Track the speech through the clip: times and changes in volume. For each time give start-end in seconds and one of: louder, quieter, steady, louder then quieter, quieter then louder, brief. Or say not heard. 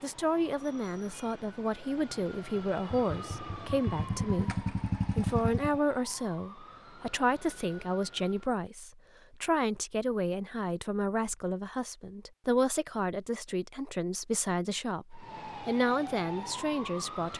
0.0-17.3 steady.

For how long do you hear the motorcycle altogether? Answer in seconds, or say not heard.
3 s.